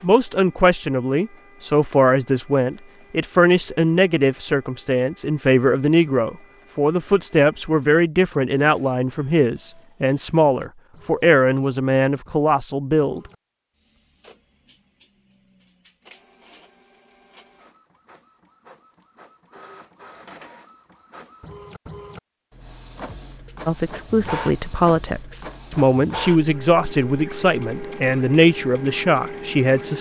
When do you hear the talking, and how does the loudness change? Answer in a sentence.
You can hear the talking from 0.0 to 13.2 s, at a steady volume; and from 23.6 to 29.9 s, at a steady volume.